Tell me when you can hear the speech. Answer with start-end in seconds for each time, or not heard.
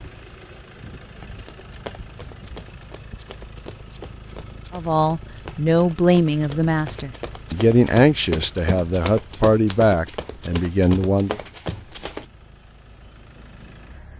4.7-11.3.